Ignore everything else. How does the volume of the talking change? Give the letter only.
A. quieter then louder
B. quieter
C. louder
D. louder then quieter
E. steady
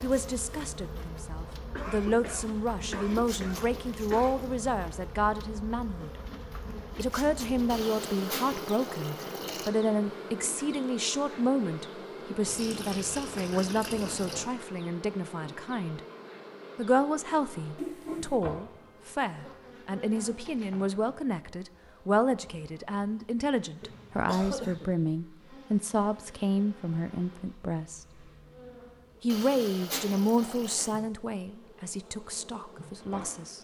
E.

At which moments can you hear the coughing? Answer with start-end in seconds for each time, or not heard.
1.8-4.4, 17.8-18.4, 23.8-24.9.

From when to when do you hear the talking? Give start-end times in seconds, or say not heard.
0.0-6.1, 7.0-16.0, 16.8-28.2, 29.2-33.5.